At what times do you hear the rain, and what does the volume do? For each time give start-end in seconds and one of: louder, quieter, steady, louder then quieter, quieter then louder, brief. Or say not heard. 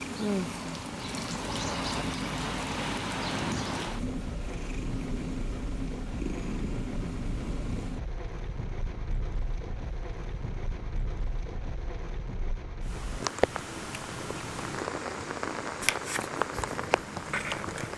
0.0-17.9 quieter then louder.